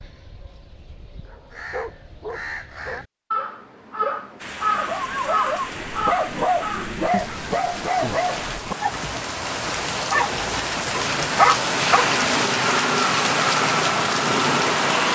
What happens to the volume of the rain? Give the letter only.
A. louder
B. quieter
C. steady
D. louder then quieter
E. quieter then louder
A.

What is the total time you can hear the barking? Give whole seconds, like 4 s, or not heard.
11 s.